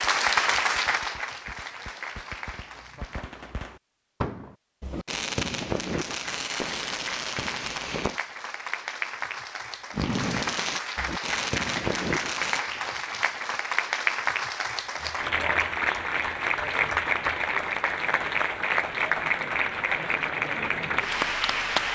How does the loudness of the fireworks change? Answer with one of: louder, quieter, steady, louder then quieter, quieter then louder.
louder.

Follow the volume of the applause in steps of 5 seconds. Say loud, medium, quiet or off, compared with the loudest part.
loud, medium, loud, loud, loud.